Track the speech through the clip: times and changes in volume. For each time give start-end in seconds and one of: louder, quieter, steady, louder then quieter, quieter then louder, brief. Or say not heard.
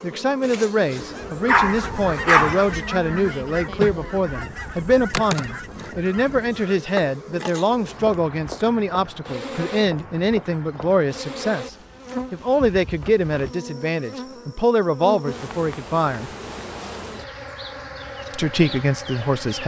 0.0-16.3 steady
18.3-19.6 brief.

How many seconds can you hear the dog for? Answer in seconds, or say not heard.
2 s.